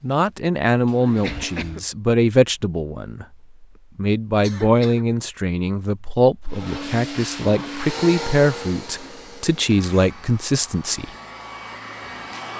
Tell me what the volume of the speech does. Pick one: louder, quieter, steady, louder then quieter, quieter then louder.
steady.